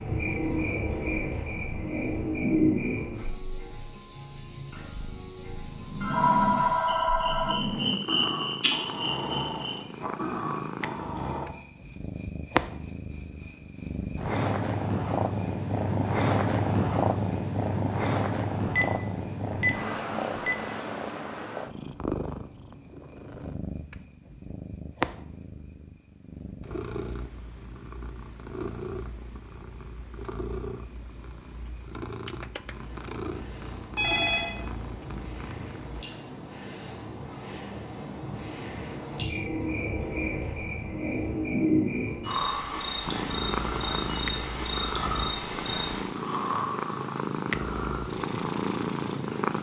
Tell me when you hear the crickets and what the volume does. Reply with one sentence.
The crickets can be heard from 0.0 to 49.5 s, getting quieter then louder.